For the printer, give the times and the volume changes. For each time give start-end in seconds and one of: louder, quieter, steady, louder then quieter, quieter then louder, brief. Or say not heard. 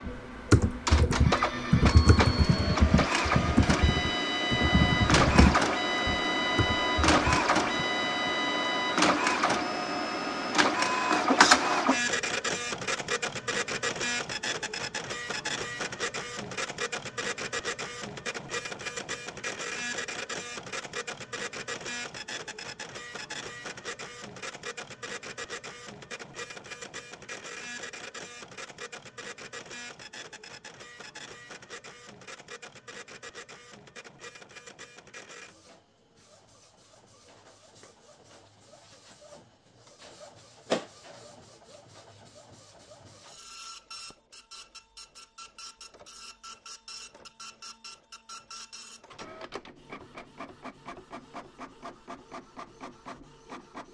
0.0-53.8 quieter.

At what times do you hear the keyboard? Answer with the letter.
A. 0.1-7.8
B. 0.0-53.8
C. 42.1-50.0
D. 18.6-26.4
A.